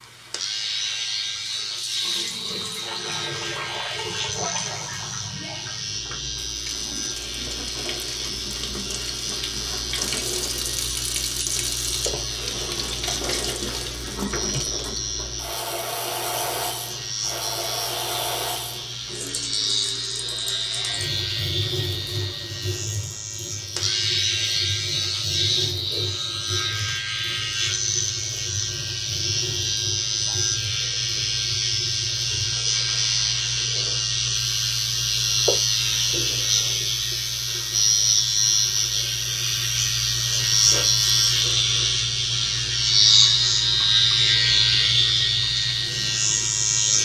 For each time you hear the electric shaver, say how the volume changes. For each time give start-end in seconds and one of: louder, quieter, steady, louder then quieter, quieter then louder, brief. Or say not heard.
0.0-47.0 louder.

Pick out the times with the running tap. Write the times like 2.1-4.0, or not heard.
0.0-47.0.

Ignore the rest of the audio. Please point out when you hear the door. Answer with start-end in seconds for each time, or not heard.
not heard.